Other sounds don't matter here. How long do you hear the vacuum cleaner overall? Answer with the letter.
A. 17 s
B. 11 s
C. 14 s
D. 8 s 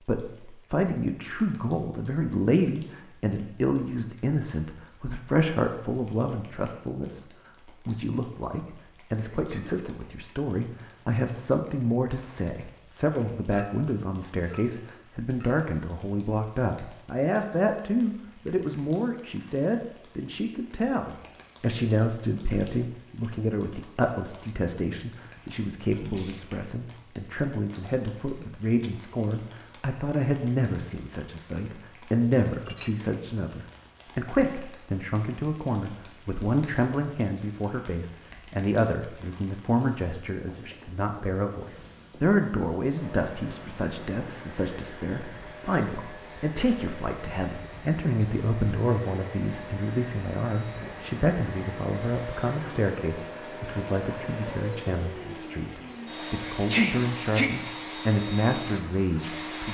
A.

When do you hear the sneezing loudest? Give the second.
57 s.